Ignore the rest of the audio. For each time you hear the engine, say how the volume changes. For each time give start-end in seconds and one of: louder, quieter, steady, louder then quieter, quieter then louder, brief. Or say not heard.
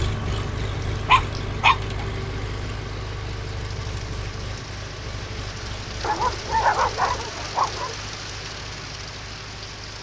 0.0-9.9 quieter.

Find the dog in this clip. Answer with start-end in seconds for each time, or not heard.
1.1-1.8, 6.0-8.0.